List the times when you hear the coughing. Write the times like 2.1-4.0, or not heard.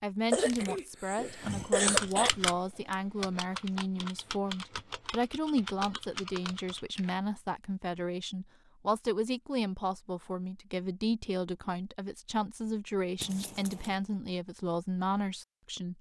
0.3-2.3.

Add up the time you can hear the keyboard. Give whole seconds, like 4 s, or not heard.
6 s.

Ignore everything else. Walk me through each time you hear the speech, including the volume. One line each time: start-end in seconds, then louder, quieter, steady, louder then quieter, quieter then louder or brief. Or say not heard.
0.0-15.9 steady.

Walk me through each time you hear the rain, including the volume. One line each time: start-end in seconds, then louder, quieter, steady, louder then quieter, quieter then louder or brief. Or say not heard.
not heard.